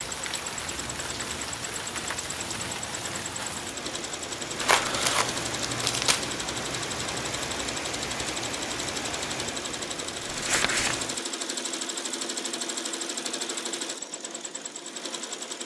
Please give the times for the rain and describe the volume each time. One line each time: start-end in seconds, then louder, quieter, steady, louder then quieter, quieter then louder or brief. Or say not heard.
0.0-11.2 steady.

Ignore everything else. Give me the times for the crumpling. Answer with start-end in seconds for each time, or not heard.
4.6-6.3, 10.2-11.1.